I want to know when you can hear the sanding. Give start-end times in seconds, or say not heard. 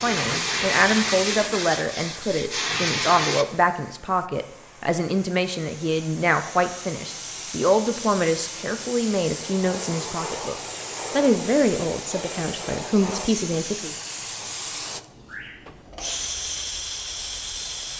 0.0-3.5.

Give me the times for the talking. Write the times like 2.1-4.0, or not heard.
0.0-13.9.